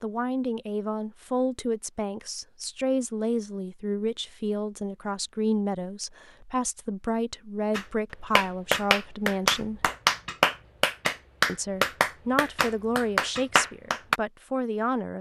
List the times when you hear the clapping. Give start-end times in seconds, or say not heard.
7.8-14.2.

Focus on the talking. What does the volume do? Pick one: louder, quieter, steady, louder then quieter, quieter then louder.
steady.